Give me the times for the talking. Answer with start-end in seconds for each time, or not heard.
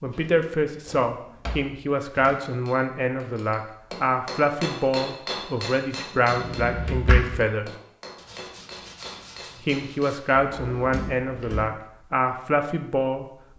0.0-7.7, 9.6-13.2.